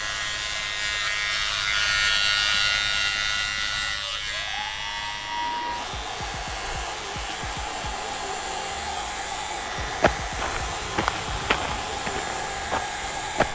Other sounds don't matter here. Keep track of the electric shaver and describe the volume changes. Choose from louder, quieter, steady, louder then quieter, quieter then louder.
quieter.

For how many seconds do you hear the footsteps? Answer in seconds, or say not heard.
4 s.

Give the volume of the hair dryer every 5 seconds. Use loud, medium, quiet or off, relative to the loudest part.
medium, loud, loud.